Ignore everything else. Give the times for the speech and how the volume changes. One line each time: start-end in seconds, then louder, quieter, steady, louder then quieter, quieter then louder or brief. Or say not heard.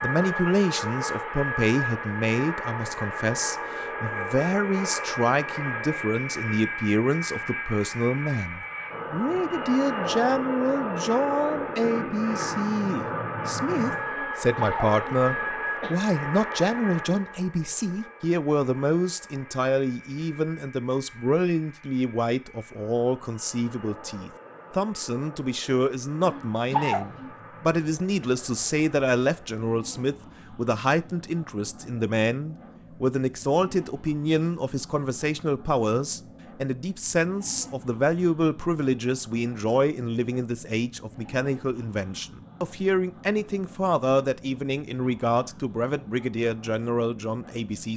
0.0-47.9 steady.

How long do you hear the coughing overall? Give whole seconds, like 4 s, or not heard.
3 s.